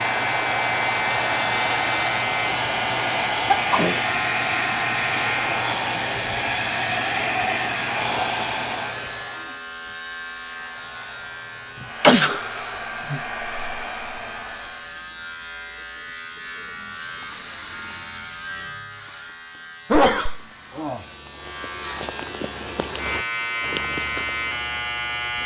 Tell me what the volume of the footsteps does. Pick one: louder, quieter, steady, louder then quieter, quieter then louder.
louder then quieter.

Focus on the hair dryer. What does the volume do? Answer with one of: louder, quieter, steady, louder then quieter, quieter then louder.
quieter then louder.